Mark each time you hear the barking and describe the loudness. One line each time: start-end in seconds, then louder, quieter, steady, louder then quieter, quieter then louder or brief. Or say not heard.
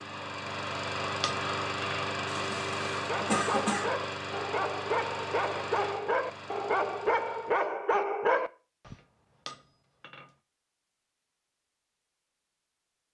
2.9-8.9 louder.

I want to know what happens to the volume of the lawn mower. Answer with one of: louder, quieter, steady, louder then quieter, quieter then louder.
quieter.